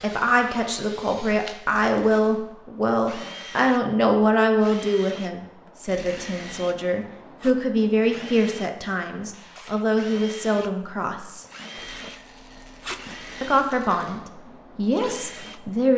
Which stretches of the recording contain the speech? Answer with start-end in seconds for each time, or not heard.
0.0-11.4, 13.4-15.9.